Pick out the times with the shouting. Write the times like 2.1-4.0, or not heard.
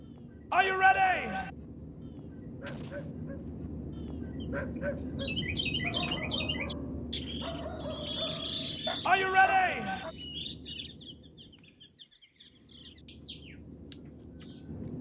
0.5-1.5, 9.1-10.1.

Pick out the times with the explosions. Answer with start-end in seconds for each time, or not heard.
2.6-3.1.